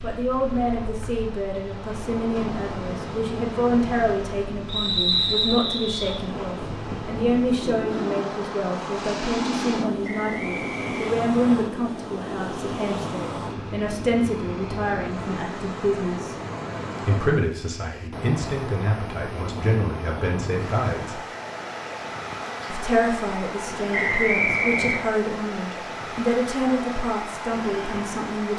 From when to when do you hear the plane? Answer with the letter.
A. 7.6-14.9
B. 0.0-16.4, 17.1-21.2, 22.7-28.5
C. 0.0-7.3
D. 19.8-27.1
A.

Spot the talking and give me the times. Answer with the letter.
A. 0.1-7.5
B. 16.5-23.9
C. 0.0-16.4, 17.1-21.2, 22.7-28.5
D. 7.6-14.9
C.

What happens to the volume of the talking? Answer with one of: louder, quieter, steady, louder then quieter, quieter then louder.
steady.